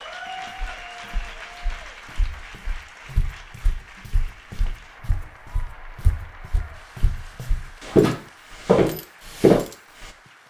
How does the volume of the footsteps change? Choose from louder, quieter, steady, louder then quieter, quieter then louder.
louder.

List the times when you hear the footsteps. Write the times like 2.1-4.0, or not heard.
0.2-9.7.